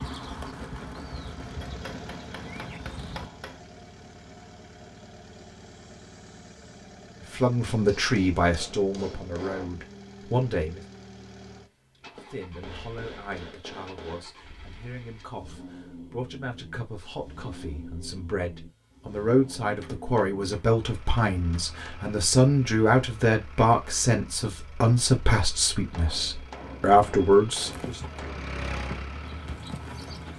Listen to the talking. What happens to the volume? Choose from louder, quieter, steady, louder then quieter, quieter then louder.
quieter then louder.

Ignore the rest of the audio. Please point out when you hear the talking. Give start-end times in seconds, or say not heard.
7.3-10.8, 12.3-28.0.